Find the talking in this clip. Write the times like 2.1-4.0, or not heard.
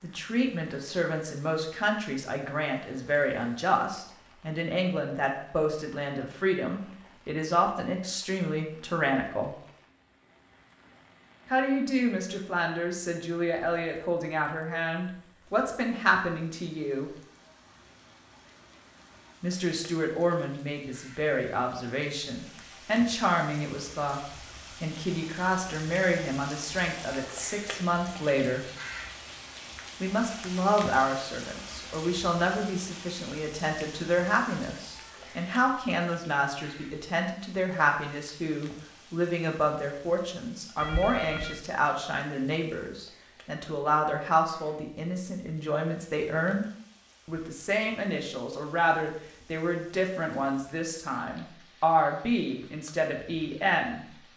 0.0-9.6, 11.5-17.1, 19.4-28.6, 30.0-46.6, 47.2-54.1.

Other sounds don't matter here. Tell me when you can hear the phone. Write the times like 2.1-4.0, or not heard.
40.8-41.6.